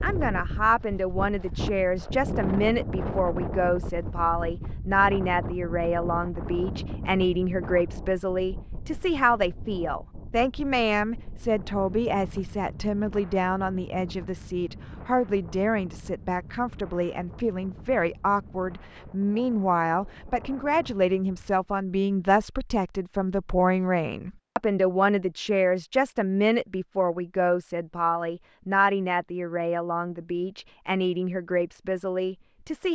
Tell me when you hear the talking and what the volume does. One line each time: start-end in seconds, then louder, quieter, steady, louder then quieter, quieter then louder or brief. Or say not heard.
0.0-32.9 steady.